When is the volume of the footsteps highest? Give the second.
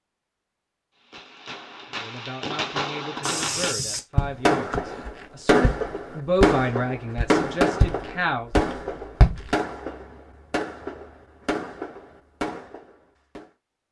9 s.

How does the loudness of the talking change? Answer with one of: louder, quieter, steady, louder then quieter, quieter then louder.
louder then quieter.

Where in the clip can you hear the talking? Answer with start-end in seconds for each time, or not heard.
1.9-8.5.